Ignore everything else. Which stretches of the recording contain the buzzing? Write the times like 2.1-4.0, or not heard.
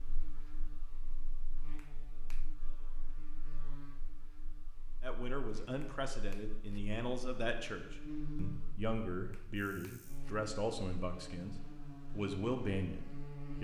0.0-13.5.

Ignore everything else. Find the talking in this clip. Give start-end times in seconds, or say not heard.
5.0-13.5.